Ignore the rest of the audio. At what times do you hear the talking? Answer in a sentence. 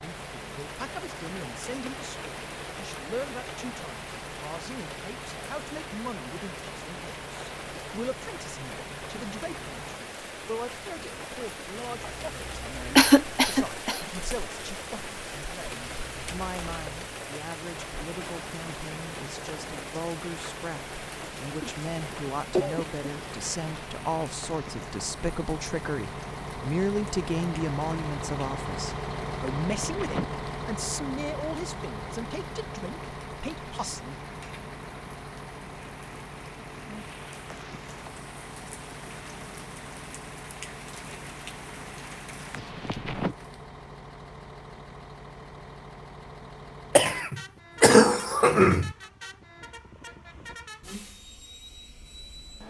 You can hear the talking from 0.0 to 34.2 s.